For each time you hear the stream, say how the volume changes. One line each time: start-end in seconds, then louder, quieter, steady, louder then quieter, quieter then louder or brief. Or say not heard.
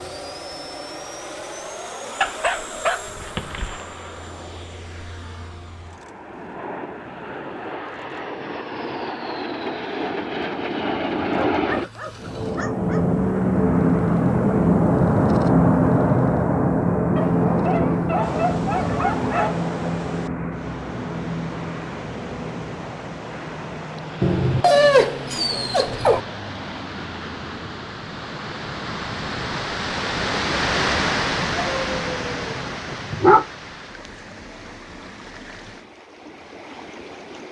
18.2-37.4 louder then quieter.